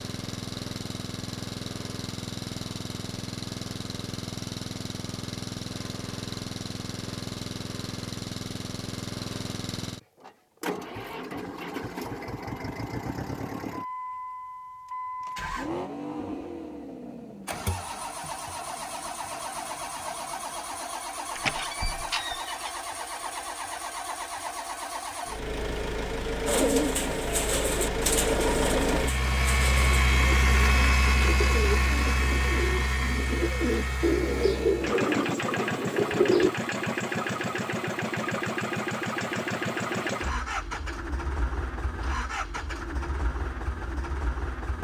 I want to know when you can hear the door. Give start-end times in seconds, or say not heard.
21.4-22.8.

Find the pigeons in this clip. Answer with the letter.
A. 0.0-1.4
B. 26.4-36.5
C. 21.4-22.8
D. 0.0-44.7
B.